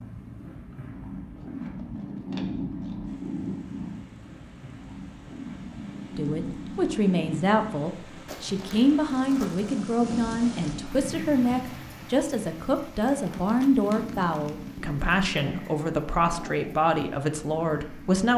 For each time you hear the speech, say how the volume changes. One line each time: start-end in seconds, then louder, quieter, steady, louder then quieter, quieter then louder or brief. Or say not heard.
6.2-18.3 steady.